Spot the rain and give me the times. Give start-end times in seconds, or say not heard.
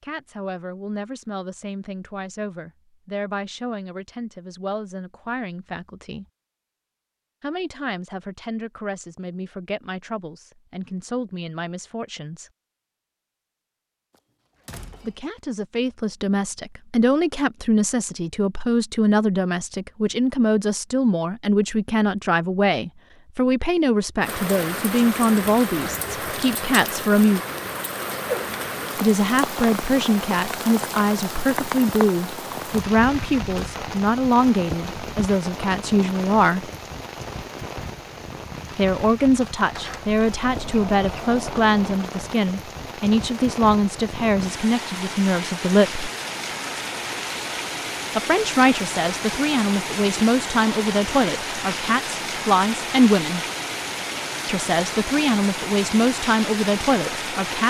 24.2-57.6.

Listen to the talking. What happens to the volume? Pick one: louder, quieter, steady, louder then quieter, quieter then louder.
louder.